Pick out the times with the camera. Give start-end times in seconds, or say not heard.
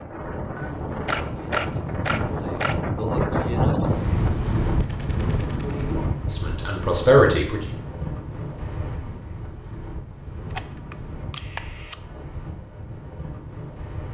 0.6-2.9, 4.8-5.8, 10.4-11.9.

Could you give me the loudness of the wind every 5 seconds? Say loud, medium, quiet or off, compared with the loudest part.
loud, medium, quiet.